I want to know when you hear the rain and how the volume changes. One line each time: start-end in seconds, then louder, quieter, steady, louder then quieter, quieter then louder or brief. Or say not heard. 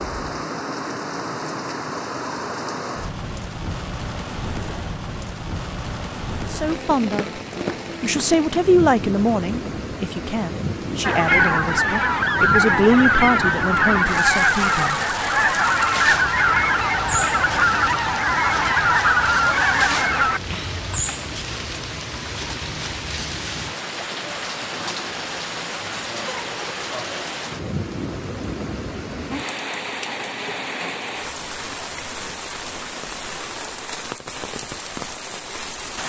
0.0-36.0 steady.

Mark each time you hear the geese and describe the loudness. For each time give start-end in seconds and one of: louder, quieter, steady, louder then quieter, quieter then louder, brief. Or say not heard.
11.0-21.0 steady.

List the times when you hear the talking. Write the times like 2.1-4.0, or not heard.
6.5-7.4, 8.0-15.0.